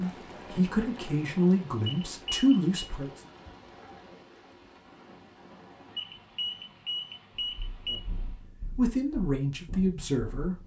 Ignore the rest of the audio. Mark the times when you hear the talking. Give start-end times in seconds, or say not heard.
0.0-3.2, 8.1-10.6.